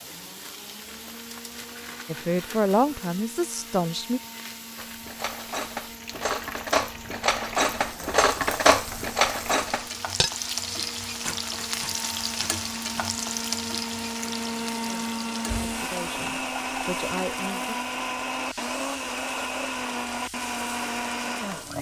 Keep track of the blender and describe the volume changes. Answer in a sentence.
The loudness of the blender goes up.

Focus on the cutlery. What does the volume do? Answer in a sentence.
The volume of the cutlery goes up, then down.